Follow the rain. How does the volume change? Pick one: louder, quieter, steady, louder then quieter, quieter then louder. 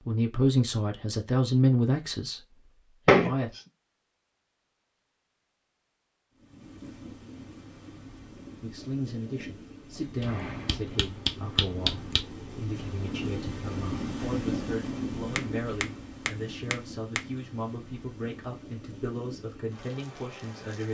louder then quieter.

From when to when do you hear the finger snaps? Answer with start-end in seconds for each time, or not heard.
3.0-3.6, 10.2-12.2, 15.3-17.2.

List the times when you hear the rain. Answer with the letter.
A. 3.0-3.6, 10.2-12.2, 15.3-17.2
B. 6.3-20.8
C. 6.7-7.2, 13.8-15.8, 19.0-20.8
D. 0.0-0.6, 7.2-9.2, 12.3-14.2
B.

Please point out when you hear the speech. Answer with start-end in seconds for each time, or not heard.
0.1-3.5, 8.6-20.8.